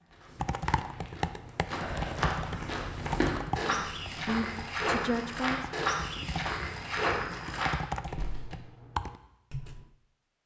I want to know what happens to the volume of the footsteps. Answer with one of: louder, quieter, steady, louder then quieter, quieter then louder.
louder.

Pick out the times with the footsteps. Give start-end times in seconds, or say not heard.
0.0-8.6.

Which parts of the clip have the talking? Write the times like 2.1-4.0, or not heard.
3.5-5.7.